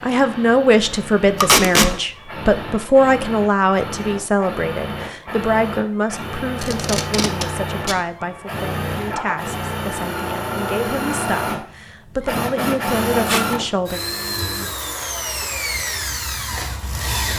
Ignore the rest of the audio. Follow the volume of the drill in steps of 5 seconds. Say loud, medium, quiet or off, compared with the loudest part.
medium, loud, loud, loud.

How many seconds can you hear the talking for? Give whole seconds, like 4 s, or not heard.
14 s.